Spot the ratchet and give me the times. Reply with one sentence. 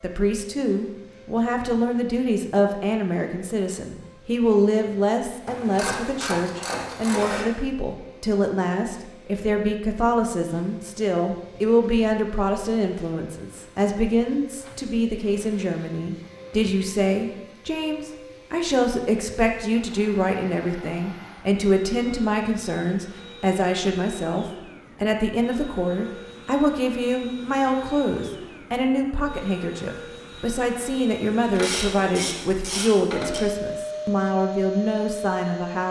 The ratchet can be heard from 5.5 to 7.5 s and from 31.5 to 33.4 s.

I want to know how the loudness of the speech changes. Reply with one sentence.
The volume of the speech stays about the same.